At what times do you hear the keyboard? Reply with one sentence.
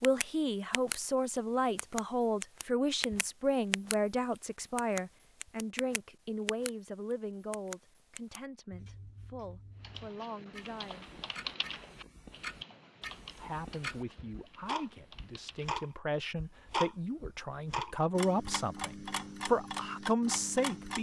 The keyboard can be heard from 9.8 to 15.8 s.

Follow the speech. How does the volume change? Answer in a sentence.
The loudness of the speech goes down, then up.